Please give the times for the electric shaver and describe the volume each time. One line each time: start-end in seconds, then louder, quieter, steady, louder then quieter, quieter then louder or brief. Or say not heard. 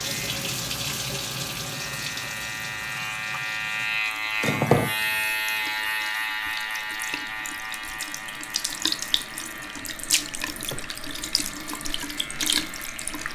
0.0-13.2 louder then quieter.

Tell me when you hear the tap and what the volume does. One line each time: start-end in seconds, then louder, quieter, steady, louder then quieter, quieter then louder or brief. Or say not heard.
0.0-13.2 quieter then louder.